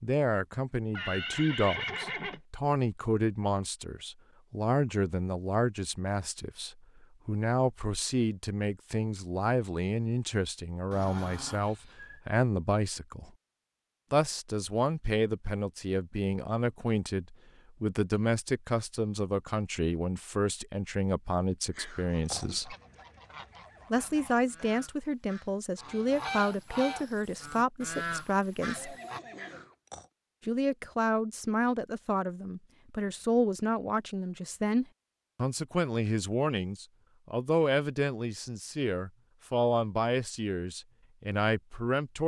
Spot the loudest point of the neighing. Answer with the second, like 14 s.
2 s.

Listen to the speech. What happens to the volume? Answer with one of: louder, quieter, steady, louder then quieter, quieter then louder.
steady.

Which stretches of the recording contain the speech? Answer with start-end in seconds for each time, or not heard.
0.0-13.3, 14.1-22.8, 23.9-28.9, 30.4-42.2.